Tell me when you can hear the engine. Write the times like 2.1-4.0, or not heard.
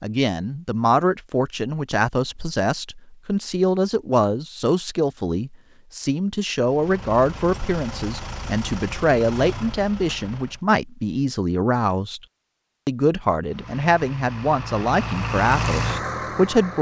6.7-10.6, 13.4-16.7.